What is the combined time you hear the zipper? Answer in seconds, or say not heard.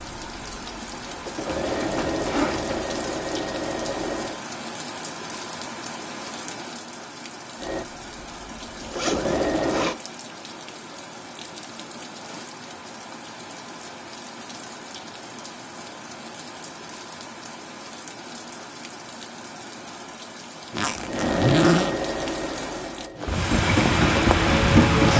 4 s.